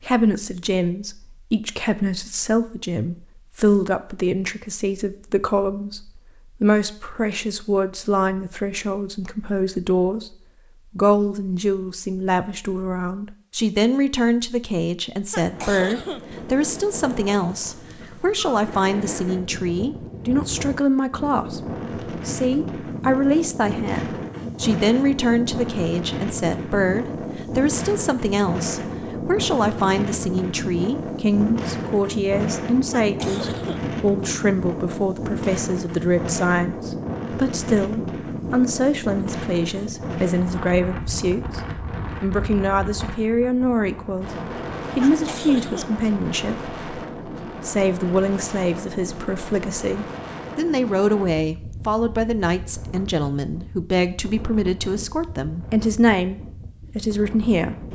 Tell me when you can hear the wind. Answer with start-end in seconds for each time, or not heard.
15.4-57.9.